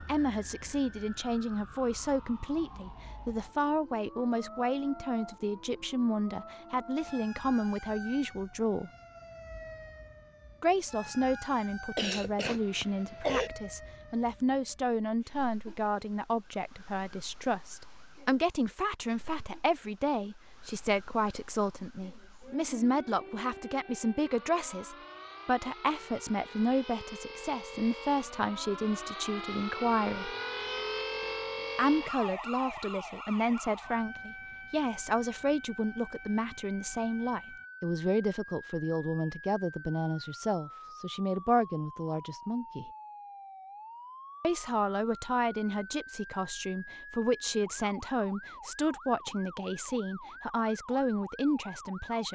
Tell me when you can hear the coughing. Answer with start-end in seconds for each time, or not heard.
11.9-13.5.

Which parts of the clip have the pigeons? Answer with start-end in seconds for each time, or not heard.
not heard.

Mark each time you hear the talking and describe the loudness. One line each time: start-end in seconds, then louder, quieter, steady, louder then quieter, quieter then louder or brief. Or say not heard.
0.0-8.9 steady
10.6-30.4 steady
31.8-42.9 steady
44.4-52.3 steady.